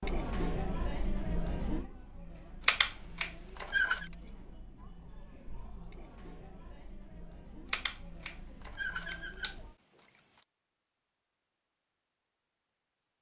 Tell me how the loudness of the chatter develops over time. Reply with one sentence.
The loudness of the chatter goes down.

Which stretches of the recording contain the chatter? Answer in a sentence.
The chatter can be heard from 0.0 to 9.8 s.